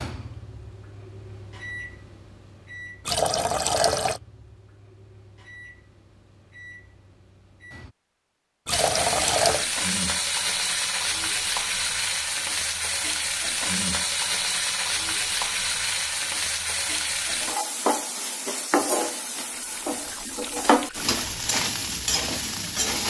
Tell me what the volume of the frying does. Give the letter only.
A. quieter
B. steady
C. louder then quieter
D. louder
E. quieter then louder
B.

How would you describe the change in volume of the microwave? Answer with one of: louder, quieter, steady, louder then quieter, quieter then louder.
quieter.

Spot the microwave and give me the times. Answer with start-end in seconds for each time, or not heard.
0.0-8.0.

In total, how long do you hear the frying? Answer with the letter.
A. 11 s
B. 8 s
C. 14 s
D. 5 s
C.